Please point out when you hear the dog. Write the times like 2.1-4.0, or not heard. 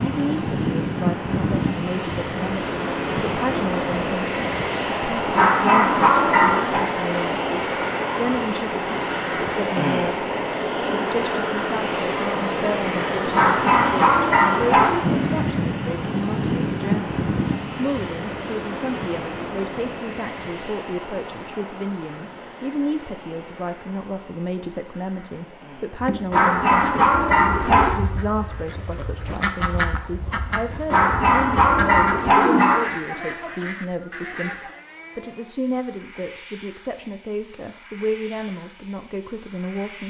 5.3-6.8, 13.3-14.9, 26.3-27.9, 30.9-32.8.